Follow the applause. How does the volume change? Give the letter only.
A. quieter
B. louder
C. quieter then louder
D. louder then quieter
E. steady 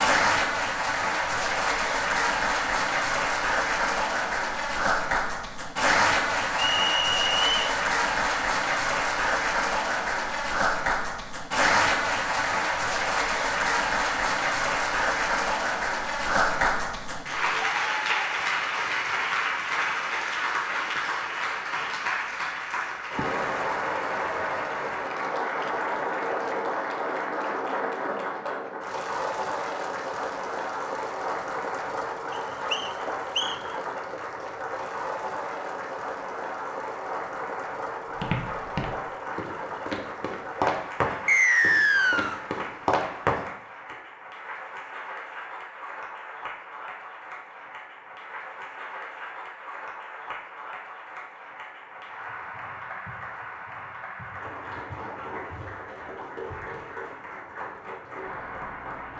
A.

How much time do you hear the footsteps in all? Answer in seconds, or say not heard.
6 s.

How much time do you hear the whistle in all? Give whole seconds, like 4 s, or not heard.
4 s.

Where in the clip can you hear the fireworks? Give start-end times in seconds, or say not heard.
not heard.